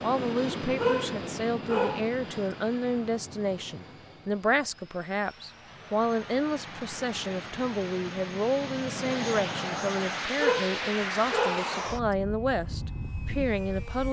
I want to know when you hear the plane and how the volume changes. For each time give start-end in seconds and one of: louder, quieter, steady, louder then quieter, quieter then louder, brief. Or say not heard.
0.0-14.0 quieter then louder.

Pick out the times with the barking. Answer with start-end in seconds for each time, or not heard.
0.8-2.1, 10.3-11.7.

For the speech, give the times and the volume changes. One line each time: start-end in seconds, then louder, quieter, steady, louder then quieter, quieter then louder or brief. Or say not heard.
0.0-14.0 steady.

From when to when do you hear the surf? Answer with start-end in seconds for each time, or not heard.
not heard.